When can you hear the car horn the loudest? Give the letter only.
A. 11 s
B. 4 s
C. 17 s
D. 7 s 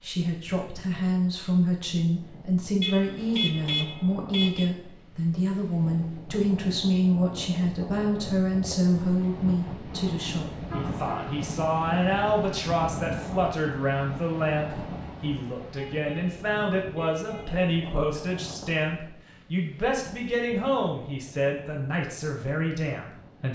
B.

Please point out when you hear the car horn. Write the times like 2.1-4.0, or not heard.
2.8-4.7, 10.5-11.3, 15.8-17.6.